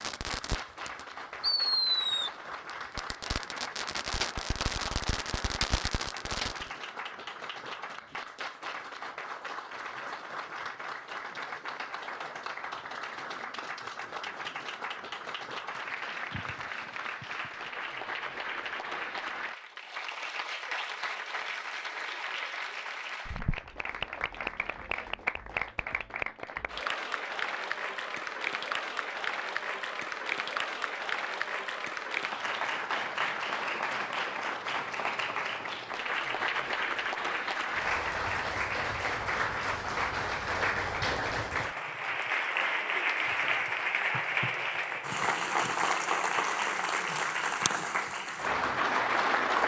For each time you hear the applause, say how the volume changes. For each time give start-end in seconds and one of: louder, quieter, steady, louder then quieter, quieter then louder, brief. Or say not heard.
0.0-49.6 louder.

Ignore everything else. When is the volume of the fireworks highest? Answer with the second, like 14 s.
2 s.